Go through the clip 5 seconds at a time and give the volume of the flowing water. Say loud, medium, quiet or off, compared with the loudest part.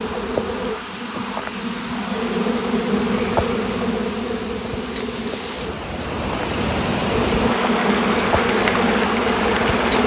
quiet, loud.